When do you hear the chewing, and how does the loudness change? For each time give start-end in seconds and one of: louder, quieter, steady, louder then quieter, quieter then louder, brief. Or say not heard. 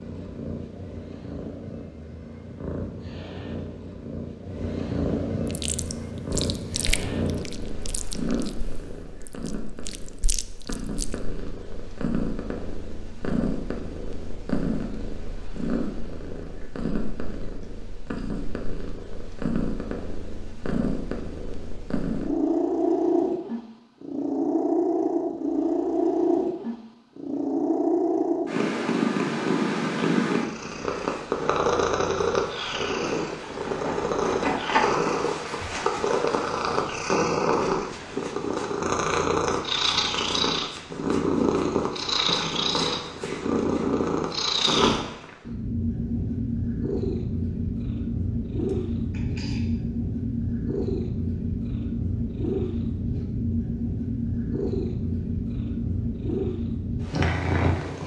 5.5-11.2 quieter then louder.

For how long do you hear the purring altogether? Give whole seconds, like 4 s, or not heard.
58 s.